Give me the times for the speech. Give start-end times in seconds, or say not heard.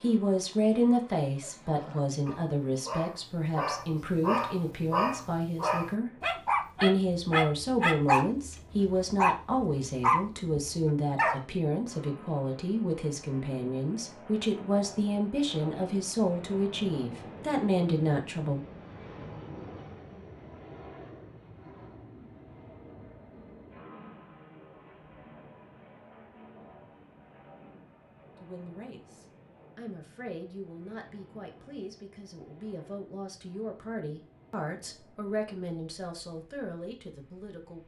0.0-18.6, 28.4-37.8.